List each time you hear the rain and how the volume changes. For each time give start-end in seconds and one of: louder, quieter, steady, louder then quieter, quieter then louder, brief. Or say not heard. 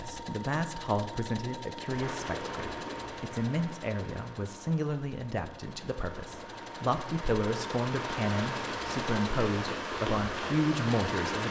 1.8-11.4 quieter then louder.